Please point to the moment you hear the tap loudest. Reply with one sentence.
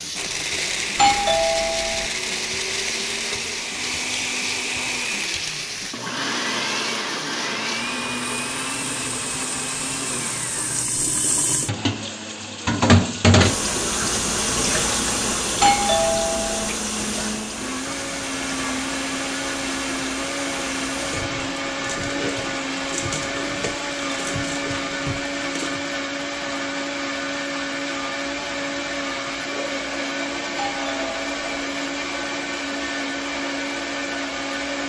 The volume of the tap peaks at 13 seconds.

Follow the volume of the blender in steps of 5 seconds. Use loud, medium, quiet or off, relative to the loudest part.
loud, loud, medium, loud, loud, loud, loud.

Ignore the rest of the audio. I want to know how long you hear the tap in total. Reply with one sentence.
The tap can be heard for 26 seconds in total.